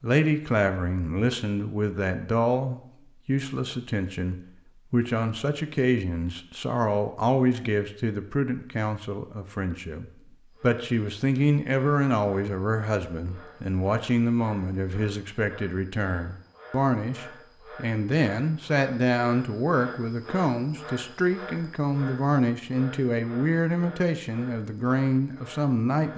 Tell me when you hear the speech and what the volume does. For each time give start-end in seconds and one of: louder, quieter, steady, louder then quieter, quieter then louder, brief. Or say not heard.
0.0-26.1 steady.